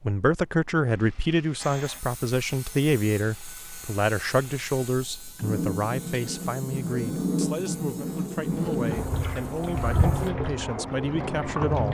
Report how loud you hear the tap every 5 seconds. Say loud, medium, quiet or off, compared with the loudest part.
quiet, loud, loud.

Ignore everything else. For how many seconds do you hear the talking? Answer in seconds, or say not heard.
12 s.